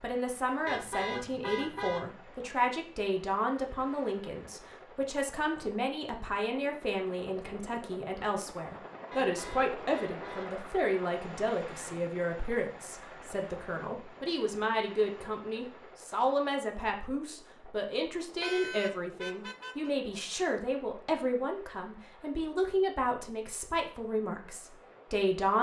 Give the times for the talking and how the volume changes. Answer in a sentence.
You can hear the talking from 0.0 to 25.5 s, at a steady volume.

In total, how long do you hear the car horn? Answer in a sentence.
The car horn can be heard for 5 seconds in total.